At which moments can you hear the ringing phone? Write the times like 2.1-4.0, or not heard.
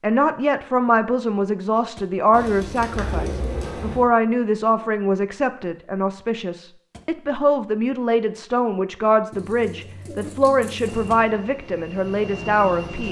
not heard.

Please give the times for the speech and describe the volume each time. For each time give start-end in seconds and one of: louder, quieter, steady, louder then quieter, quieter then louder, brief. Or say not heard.
0.0-13.0 steady.